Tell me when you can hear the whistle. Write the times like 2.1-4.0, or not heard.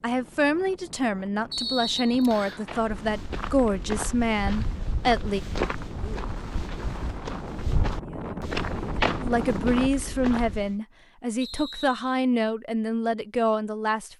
1.5-2.6, 11.4-12.2.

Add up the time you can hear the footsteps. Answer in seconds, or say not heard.
8 s.